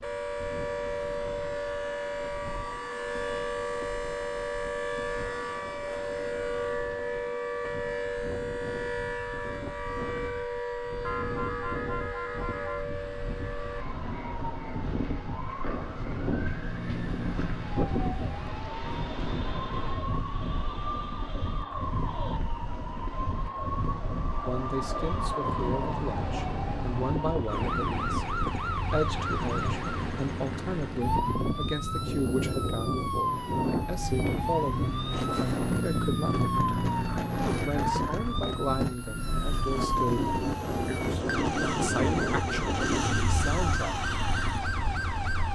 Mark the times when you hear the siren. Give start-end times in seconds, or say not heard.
0.0-45.5.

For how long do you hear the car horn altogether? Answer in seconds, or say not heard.
2 s.